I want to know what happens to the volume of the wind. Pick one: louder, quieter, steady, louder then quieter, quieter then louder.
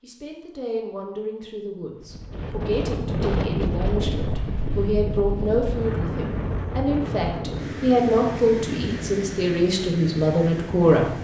quieter.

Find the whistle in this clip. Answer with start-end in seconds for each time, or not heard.
not heard.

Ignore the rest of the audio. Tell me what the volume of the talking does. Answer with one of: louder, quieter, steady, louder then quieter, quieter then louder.
louder.